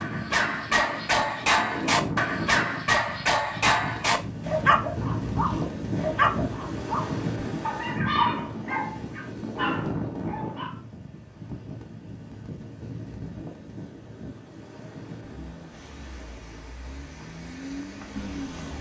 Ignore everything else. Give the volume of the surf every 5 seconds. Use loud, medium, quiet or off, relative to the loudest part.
loud, loud, medium, quiet.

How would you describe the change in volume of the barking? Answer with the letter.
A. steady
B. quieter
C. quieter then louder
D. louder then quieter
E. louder
B.